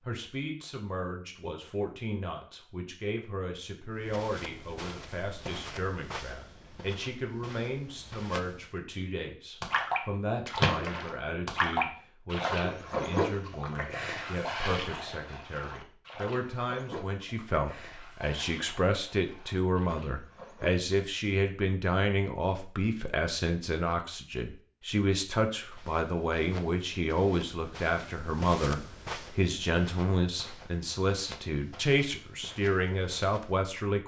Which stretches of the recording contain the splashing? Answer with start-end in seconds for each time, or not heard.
9.6-20.9.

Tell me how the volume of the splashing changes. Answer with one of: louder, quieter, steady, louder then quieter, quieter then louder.
quieter.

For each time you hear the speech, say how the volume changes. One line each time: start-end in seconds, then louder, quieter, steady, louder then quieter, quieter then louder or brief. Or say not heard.
0.1-34.0 louder.